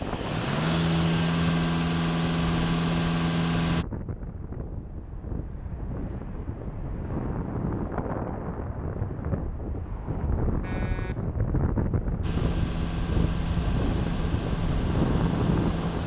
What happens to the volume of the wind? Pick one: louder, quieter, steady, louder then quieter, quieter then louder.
louder.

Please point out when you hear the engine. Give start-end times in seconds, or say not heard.
0.0-3.9, 12.2-16.0.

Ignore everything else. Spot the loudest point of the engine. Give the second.
1 s.